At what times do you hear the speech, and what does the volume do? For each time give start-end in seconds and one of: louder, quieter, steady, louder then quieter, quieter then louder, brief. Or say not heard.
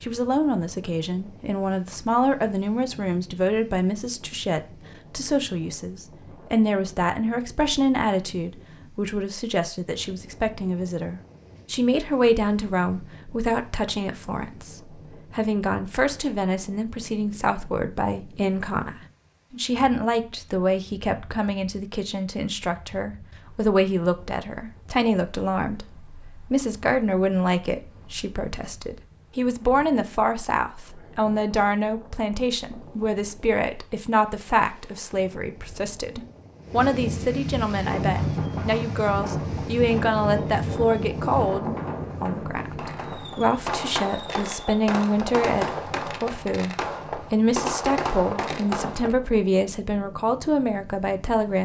0.0-51.6 steady.